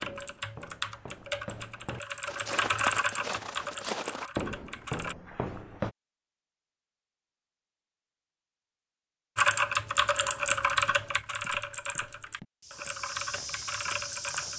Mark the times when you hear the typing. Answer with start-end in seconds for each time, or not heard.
0.0-5.2, 9.3-14.5.